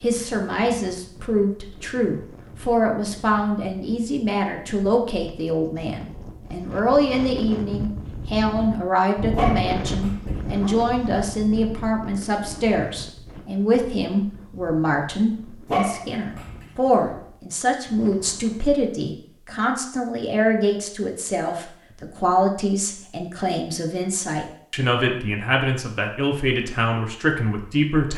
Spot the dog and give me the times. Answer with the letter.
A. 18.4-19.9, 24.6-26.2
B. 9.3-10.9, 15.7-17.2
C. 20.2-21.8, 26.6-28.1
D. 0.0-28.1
B.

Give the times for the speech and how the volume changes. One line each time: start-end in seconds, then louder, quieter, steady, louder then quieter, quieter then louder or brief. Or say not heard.
0.0-28.1 steady.